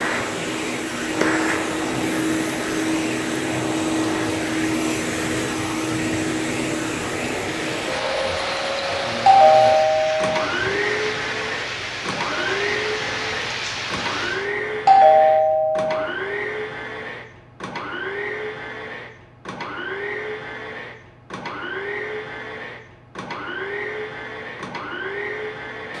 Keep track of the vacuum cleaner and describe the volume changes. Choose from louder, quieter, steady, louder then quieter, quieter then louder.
quieter.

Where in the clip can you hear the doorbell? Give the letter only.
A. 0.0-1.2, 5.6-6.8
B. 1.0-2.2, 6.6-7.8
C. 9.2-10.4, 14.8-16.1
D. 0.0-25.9
C.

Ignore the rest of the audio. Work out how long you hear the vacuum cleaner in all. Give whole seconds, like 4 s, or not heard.
26 s.